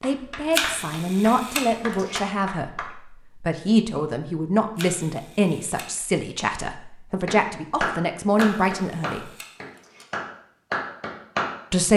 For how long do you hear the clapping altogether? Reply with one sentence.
You can hear the clapping for 7 seconds altogether.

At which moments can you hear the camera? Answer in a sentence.
You can hear the camera from 0.5 to 2.2 s, from 4.8 to 5.9 s and from 8.3 to 10.1 s.